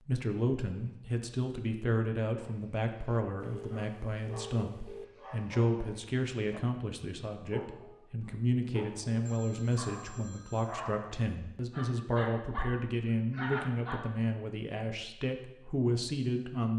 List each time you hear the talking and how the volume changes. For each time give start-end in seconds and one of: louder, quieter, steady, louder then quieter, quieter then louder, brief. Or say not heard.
0.1-16.7 steady.